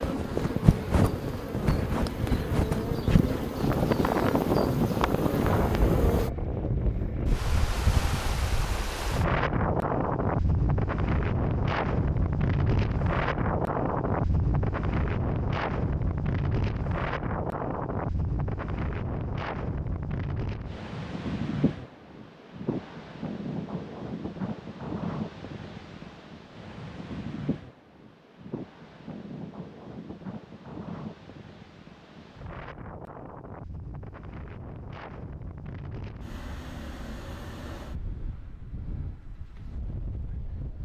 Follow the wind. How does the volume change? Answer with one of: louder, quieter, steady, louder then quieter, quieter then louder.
quieter.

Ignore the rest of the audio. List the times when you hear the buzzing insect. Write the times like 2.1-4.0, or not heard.
0.0-6.3.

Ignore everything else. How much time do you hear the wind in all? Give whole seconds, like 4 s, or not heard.
41 s.